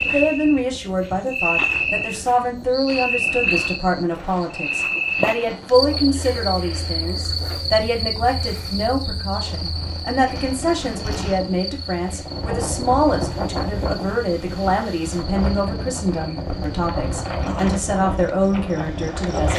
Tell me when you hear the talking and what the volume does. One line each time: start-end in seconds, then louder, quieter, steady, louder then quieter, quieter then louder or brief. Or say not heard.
0.1-19.5 steady.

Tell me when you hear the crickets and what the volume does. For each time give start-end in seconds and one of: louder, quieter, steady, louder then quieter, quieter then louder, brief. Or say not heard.
0.0-19.5 quieter.